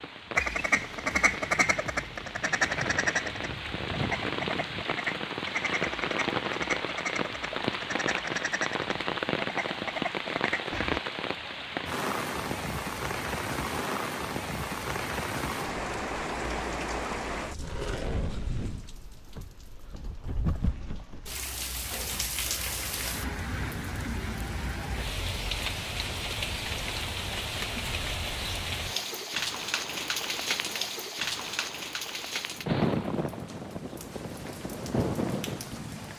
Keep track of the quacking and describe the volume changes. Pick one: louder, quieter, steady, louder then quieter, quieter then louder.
quieter.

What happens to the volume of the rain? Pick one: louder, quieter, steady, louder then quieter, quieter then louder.
steady.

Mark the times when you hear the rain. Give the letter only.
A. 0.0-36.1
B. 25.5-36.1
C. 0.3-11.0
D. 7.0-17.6
A.